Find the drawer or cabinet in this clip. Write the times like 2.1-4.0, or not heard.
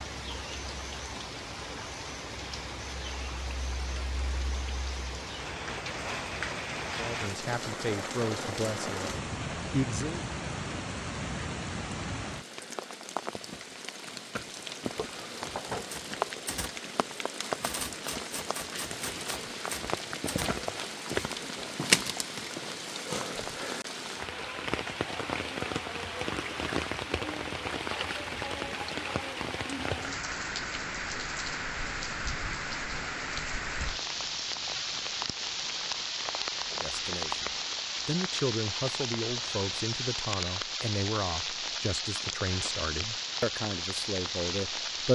14.9-15.9.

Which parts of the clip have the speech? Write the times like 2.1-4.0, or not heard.
7.0-10.2, 36.7-45.0.